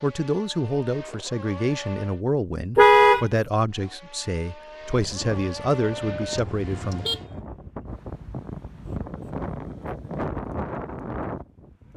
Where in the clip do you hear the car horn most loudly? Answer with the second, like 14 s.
3 s.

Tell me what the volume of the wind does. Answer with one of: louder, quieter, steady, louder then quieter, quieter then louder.
louder.